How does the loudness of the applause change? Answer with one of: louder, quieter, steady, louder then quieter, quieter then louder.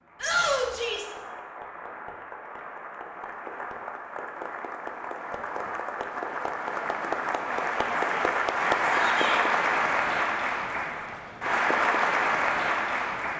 louder.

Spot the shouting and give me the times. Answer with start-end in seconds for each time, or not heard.
0.1-1.1, 8.8-9.4.